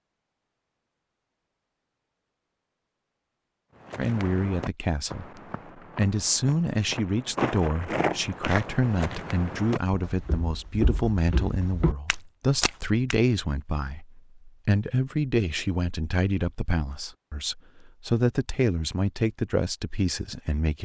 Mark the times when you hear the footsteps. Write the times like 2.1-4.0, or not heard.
3.9-13.2.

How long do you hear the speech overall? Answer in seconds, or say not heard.
16 s.